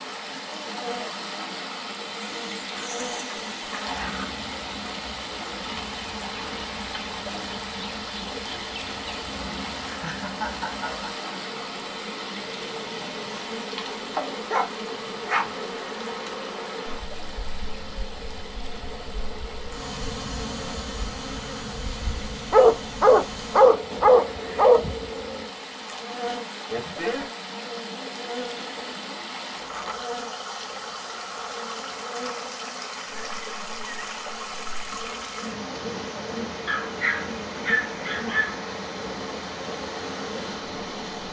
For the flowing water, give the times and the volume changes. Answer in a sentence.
You can hear the flowing water from 0.0 to 41.2 s, getting quieter then louder.